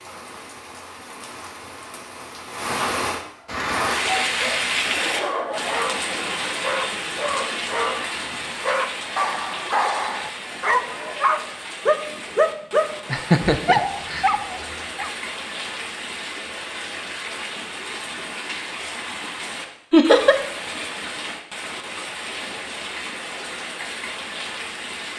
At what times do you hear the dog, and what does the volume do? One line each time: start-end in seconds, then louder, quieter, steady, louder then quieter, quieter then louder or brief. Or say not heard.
3.4-15.1 louder.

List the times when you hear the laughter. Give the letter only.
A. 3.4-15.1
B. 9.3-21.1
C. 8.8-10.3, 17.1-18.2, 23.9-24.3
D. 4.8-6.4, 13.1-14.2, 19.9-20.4
D.